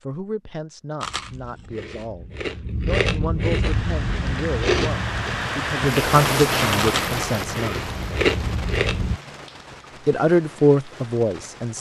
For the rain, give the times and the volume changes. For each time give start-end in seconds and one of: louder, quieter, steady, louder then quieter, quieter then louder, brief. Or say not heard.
3.6-11.7 louder then quieter.